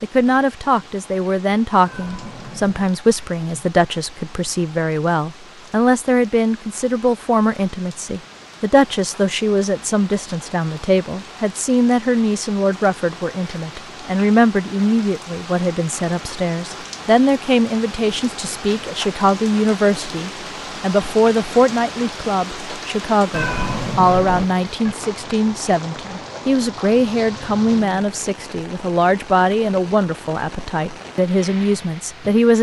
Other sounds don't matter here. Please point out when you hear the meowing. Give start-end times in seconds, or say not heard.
1.9-3.0, 23.3-24.9.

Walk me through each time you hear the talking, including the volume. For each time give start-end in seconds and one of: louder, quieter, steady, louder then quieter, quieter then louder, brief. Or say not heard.
0.0-32.5 steady.